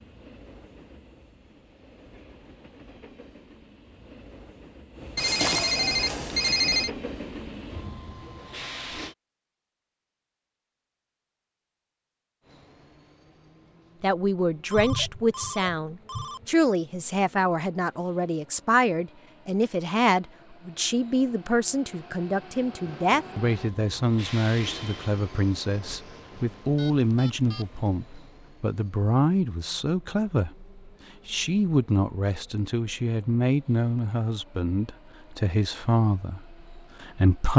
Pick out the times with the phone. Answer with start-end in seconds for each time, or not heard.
5.2-6.9, 14.7-16.4, 26.8-27.8.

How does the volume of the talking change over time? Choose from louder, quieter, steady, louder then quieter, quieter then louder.
steady.